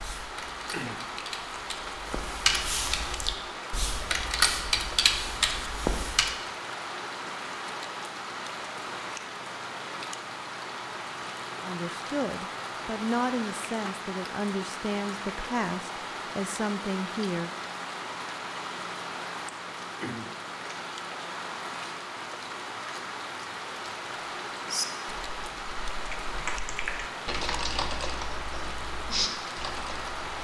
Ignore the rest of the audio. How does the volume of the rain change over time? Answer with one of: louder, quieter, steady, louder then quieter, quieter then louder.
steady.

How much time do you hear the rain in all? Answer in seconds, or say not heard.
30 s.